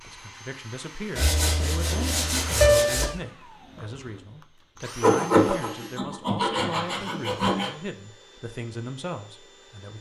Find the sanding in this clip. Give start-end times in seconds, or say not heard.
1.1-3.1, 5.0-7.7.